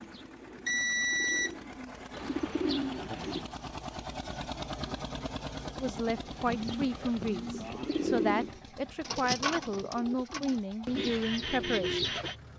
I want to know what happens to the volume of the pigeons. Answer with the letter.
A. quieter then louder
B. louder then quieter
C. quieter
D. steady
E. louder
E.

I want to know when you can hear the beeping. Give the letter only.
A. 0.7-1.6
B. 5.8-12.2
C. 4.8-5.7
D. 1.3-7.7
A.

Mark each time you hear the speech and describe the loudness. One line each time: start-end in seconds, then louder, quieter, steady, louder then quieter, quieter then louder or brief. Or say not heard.
5.8-12.2 steady.